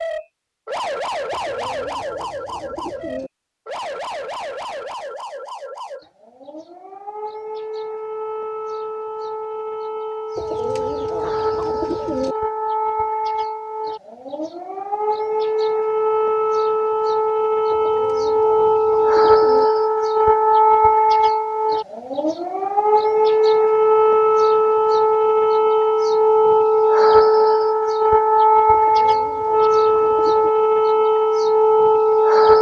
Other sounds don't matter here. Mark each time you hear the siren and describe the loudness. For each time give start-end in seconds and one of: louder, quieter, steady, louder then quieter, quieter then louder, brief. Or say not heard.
0.0-32.5 louder.